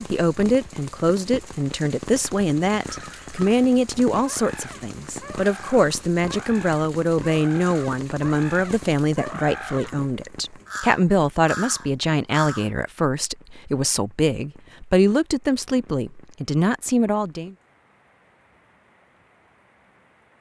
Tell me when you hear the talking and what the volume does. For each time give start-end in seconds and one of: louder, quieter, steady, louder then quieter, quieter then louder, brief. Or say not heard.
0.1-17.6 steady.